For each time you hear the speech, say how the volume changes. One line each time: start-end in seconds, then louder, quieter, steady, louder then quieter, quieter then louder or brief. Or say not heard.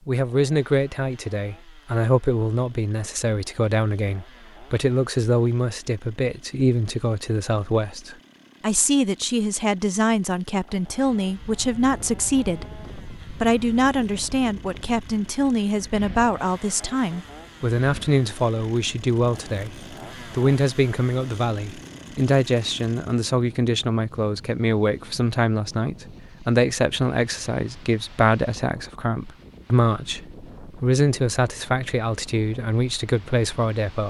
0.1-34.0 steady.